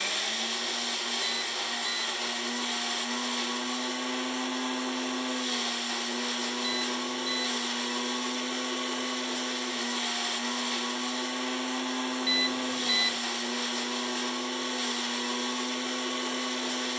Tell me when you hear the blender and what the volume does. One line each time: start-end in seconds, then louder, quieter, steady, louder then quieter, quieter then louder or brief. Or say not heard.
0.0-16.9 steady.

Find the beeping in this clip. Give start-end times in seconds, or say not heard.
1.2-2.1, 6.6-7.6, 12.2-13.2.